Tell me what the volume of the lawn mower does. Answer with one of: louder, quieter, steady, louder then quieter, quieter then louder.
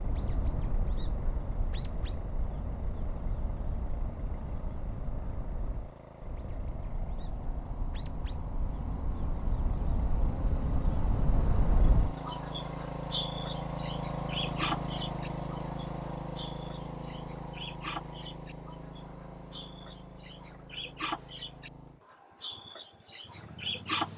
louder then quieter.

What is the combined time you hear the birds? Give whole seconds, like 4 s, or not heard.
24 s.